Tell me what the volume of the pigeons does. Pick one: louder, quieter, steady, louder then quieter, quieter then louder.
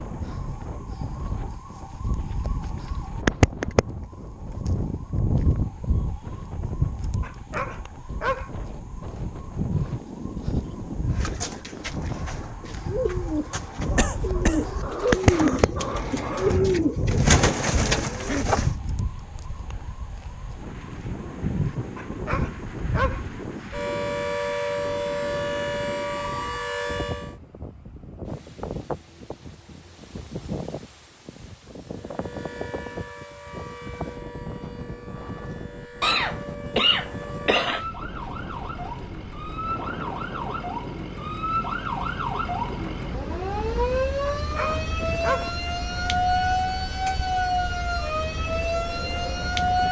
louder.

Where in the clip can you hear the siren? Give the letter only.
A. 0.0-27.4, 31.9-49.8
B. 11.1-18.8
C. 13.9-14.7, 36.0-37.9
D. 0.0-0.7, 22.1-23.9
A.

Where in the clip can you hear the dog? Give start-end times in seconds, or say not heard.
7.2-8.5, 21.9-23.2, 44.2-45.5.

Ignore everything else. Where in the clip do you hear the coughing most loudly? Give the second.
37 s.